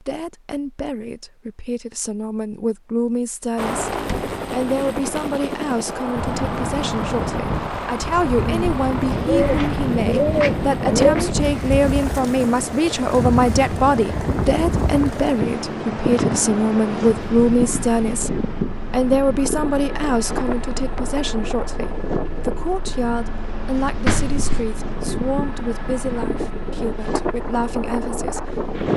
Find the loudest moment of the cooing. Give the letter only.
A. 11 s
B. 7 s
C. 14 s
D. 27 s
A.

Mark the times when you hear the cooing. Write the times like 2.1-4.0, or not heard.
8.3-11.3.